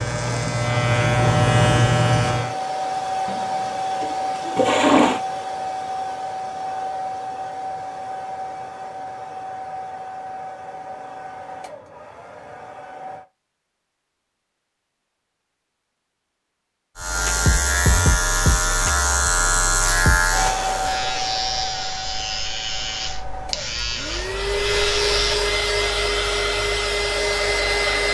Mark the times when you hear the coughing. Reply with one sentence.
The coughing can't be heard in this clip.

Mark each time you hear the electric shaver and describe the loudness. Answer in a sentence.
You can hear the electric shaver briefly from 0.0 to 2.5 s; and from 16.9 to 25.4 s, getting quieter.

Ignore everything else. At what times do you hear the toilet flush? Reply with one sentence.
You can hear the toilet flush from 3.2 to 5.2 s.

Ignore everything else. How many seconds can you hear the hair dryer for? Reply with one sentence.
The hair dryer can be heard for 21 seconds in total.